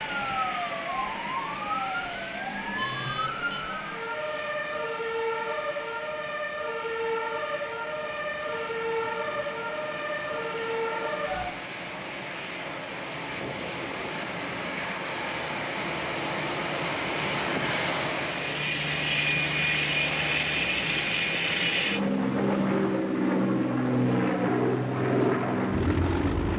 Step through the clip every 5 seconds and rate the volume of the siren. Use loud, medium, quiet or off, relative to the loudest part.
loud, loud, loud, off, off, off.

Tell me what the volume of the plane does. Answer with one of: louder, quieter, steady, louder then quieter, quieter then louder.
louder.